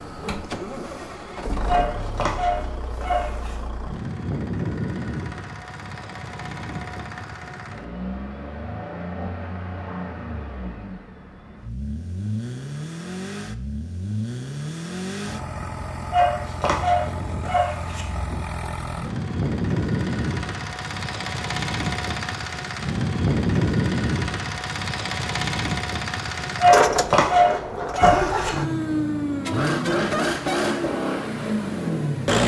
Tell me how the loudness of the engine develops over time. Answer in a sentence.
The volume of the engine goes up.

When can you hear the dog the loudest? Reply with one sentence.
The volume of the dog peaks at 27 seconds.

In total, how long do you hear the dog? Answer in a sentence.
You can hear the dog for 6 seconds altogether.